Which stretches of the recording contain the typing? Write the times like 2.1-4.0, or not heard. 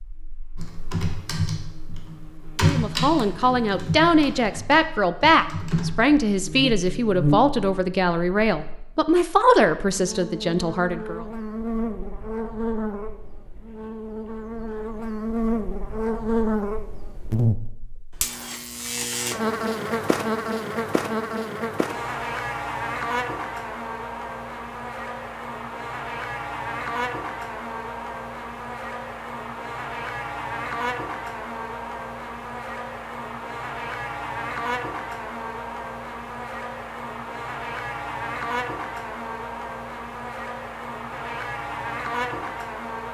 0.6-6.2.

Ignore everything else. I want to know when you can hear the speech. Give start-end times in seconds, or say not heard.
2.6-11.2.